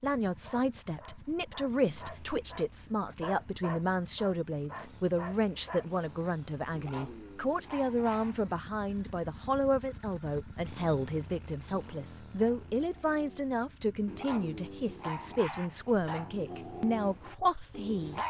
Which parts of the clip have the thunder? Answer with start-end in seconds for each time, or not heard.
not heard.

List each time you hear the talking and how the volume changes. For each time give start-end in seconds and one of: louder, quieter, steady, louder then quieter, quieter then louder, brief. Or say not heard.
0.0-18.2 steady.